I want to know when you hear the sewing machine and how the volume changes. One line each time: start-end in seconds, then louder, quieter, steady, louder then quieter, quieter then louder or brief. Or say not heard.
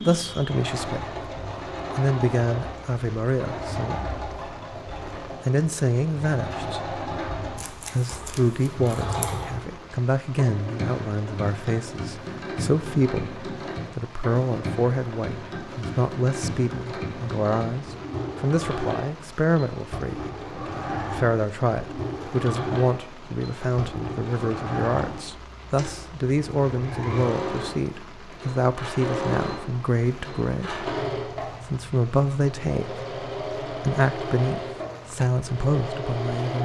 0.0-36.6 steady.